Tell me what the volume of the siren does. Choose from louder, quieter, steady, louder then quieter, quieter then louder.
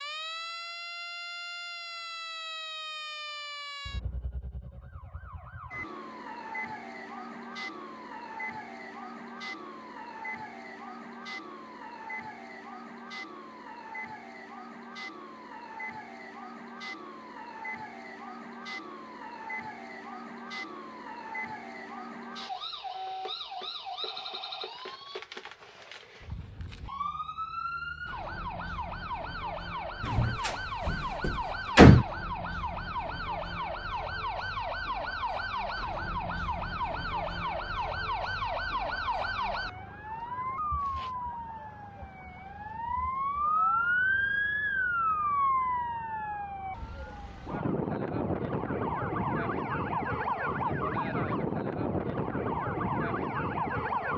louder.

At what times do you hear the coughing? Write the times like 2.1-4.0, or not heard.
not heard.